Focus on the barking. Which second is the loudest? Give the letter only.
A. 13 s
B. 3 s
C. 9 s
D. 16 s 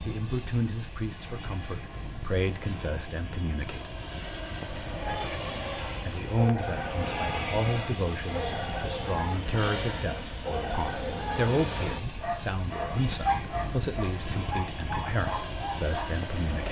A.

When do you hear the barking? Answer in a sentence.
You can hear the barking from 5.0 to 11.5 s and from 12.2 to 16.1 s.